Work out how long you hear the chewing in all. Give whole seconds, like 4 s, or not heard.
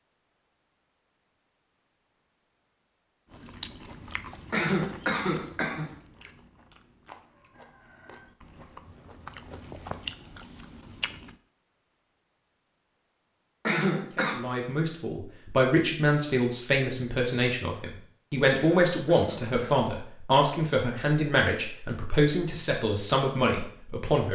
8 s.